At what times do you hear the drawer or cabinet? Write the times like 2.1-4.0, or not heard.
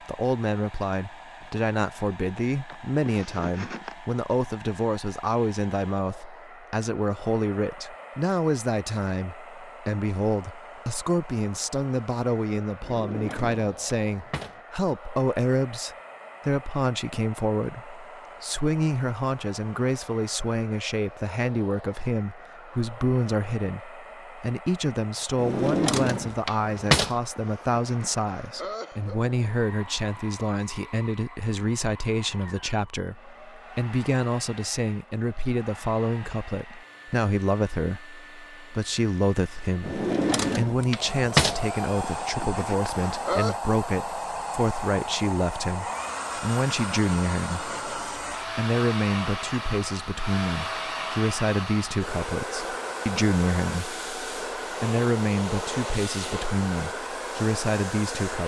12.8-14.6, 25.4-27.1, 39.8-41.6.